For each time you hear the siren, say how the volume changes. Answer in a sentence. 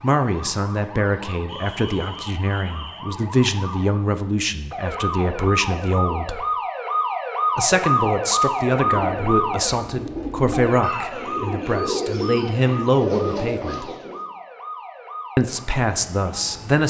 The siren can be heard from 0.0 to 16.8 s, getting louder then quieter.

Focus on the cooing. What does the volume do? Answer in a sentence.
The volume of the cooing goes up.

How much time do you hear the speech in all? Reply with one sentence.
You can hear the speech for 14 seconds altogether.